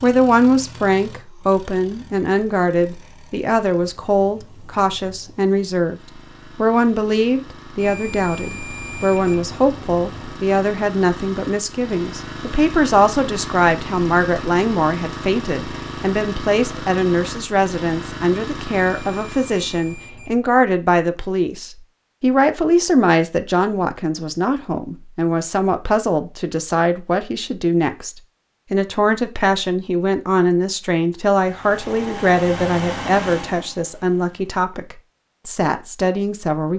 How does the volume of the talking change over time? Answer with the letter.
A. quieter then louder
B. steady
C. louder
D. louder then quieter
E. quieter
B.